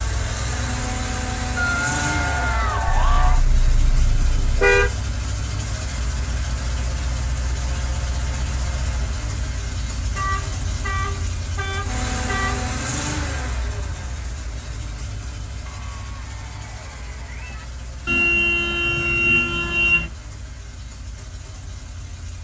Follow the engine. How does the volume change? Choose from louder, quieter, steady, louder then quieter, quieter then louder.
quieter.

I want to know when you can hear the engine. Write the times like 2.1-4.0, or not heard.
0.0-22.4.